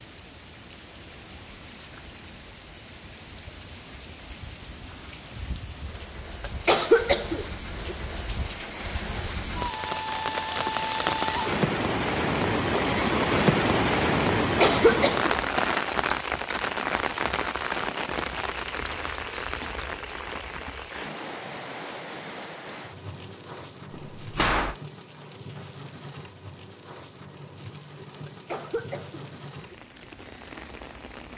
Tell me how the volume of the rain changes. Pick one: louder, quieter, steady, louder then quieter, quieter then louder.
louder then quieter.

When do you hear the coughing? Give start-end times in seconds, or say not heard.
6.4-8.0, 14.6-15.3, 28.2-29.8.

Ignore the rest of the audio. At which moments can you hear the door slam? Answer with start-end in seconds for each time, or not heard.
23.9-24.8.